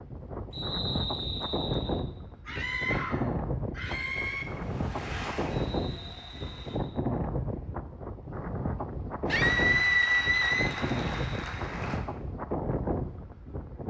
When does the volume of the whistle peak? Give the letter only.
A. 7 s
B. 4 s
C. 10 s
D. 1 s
D.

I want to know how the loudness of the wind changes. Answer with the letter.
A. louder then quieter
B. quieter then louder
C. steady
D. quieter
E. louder
C.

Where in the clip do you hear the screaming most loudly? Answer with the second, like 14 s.
10 s.